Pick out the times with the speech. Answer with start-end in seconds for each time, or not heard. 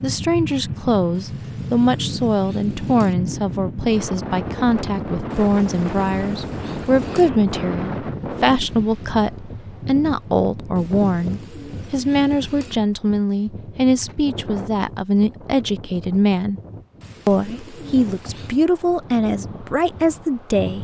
0.0-16.6, 17.2-20.7.